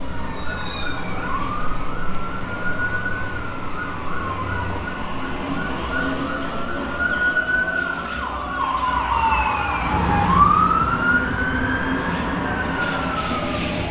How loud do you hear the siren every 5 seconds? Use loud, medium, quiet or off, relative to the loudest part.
medium, loud, loud.